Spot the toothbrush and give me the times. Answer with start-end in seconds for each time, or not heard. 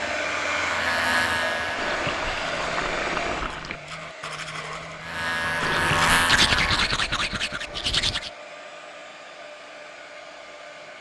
2.4-8.3.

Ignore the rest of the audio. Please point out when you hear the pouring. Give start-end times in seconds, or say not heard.
1.8-3.8, 5.6-6.3.